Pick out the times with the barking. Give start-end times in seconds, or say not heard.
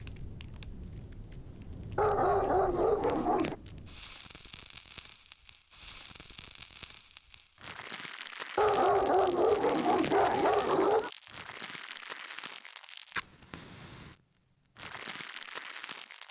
1.9-3.5, 8.6-11.1.